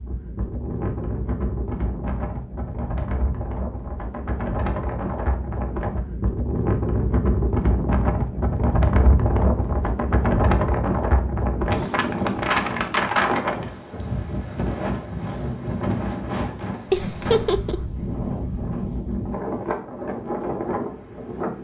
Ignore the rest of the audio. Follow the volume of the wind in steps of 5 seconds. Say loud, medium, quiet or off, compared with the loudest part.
medium, loud, loud, medium, medium.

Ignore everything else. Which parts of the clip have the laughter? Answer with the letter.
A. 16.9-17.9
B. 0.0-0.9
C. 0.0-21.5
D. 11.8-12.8
A.